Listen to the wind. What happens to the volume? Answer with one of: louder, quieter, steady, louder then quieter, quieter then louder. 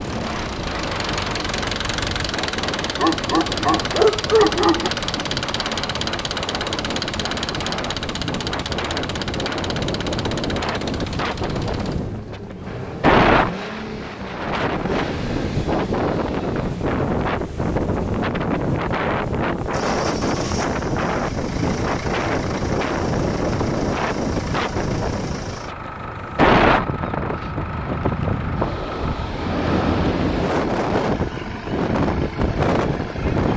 louder.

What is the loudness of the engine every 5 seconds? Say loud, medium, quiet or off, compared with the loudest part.
loud, loud, medium, medium, medium, medium, medium.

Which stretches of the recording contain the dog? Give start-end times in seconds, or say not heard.
3.0-4.9.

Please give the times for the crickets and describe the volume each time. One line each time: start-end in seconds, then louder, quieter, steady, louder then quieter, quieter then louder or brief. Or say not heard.
not heard.